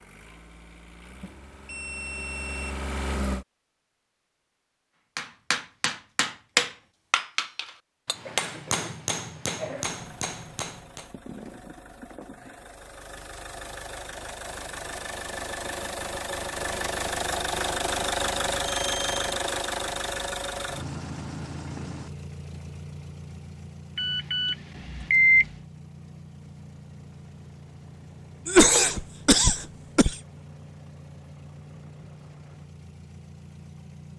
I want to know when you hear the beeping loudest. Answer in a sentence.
The loudest moment of the beeping is at 25 seconds.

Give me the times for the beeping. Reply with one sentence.
You can hear the beeping from 1.2 to 2.6 s, from 18.6 to 19.2 s and from 23.9 to 25.4 s.